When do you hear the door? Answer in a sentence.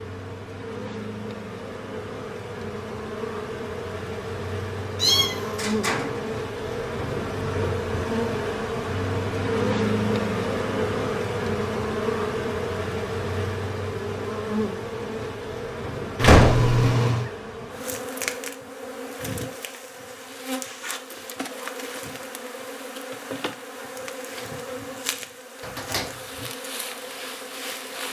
You can hear the door from 5.5 to 6.4 s, from 16.2 to 16.7 s and from 25.6 to 26.5 s.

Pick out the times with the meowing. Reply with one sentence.
You can hear the meowing from 5.0 to 5.6 s and from 16.1 to 17.3 s.